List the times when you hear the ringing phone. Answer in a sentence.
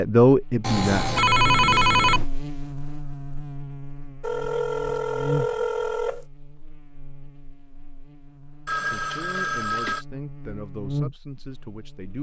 You can hear the ringing phone from 0.6 to 2.2 s, from 4.2 to 6.2 s and from 8.7 to 10.1 s.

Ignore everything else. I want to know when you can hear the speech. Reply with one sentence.
The speech can be heard from 0.0 to 1.9 s and from 8.9 to 12.1 s.